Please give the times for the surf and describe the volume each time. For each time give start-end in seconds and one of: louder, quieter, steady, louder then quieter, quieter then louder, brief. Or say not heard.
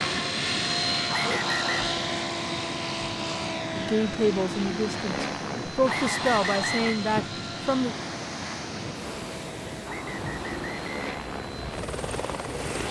0.0-12.8 steady.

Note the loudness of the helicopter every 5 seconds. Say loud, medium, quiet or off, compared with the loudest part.
loud, medium, medium.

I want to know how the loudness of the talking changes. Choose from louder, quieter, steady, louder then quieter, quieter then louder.
quieter then louder.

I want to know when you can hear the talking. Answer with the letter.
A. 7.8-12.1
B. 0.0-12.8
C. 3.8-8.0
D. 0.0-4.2
C.